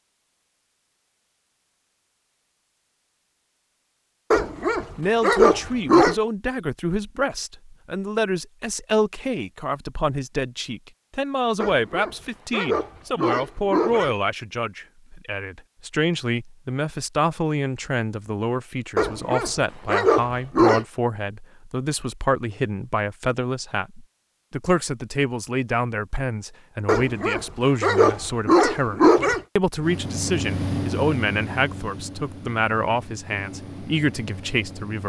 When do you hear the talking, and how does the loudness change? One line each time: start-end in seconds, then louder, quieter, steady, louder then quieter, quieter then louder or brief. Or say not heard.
5.0-35.0 steady.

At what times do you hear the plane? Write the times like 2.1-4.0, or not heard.
29.8-35.0.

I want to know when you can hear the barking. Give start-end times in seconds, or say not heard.
4.3-6.2, 11.6-14.1, 18.9-20.9, 26.9-29.4.